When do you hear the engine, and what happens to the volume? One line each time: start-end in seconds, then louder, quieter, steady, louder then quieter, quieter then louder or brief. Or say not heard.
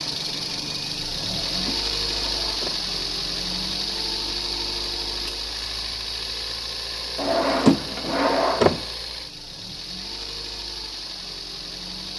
0.0-12.1 quieter.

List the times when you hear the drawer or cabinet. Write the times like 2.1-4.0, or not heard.
1.1-2.9, 7.2-8.8.